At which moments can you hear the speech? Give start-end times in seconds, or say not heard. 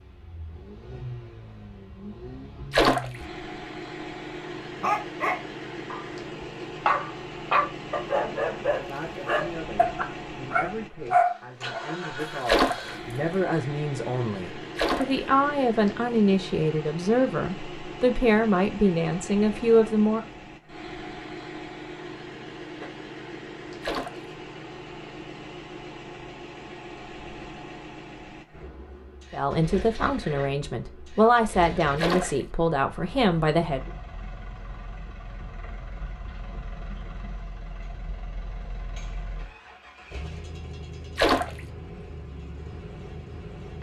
8.7-20.2, 29.3-33.9.